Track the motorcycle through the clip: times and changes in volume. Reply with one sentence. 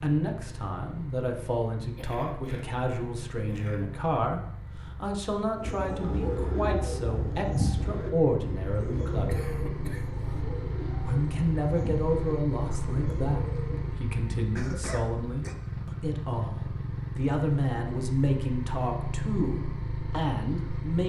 The motorcycle can be heard from 0.2 to 21.0 s, getting louder.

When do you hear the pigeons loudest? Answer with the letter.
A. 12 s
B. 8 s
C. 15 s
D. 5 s
B.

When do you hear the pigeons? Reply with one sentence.
The pigeons can be heard from 5.5 to 13.9 s.